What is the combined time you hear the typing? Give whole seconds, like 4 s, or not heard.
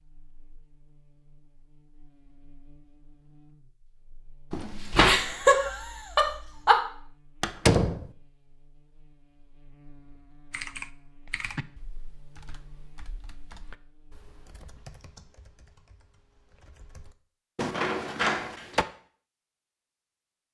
7 s.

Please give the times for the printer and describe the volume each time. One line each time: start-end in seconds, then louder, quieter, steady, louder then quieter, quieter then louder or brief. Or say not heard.
not heard.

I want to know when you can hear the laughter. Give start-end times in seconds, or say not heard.
5.0-6.8.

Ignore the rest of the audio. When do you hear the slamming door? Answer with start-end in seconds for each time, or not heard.
4.5-5.2, 7.4-8.1, 17.6-18.9.